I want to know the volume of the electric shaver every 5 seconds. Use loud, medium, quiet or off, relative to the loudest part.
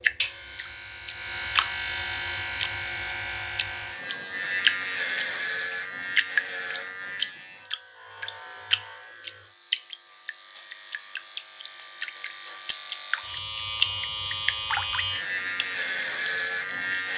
loud, medium, medium, loud.